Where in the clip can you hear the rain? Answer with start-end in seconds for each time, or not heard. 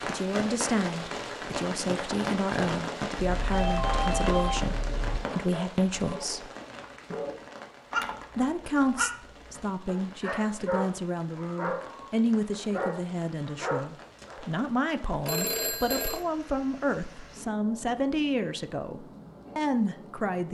0.0-20.4.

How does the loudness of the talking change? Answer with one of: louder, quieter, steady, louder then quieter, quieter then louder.
steady.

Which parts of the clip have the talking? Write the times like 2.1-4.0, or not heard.
0.1-6.5, 8.3-20.4.